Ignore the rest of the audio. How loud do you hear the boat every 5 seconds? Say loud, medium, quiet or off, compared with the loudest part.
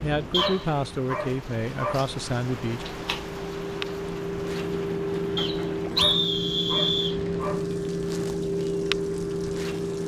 medium, loud.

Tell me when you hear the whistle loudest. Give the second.
6 s.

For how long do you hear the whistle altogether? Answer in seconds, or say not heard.
2 s.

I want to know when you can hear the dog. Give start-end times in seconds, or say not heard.
0.3-2.0, 6.0-7.7.